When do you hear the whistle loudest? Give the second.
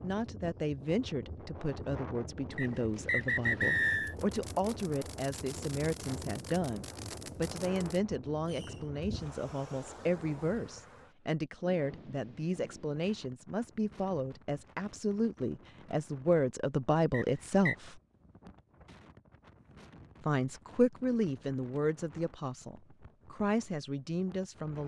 4 s.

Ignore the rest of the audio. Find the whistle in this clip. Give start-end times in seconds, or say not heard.
2.5-4.2, 17.1-17.8.